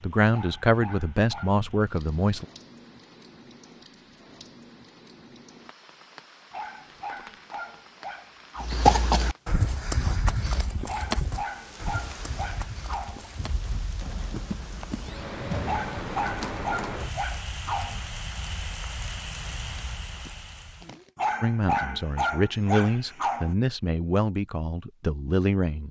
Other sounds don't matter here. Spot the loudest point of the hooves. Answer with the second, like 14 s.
9 s.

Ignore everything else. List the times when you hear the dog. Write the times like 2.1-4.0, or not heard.
0.3-1.6, 6.5-8.7, 10.8-13.2, 15.7-18.0, 21.1-23.6.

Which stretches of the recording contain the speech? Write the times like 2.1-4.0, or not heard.
0.0-2.5, 21.4-25.8.